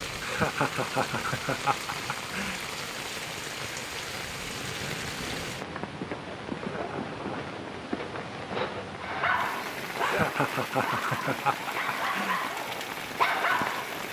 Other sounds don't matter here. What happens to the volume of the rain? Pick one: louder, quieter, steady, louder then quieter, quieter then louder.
steady.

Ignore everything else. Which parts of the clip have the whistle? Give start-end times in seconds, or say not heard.
not heard.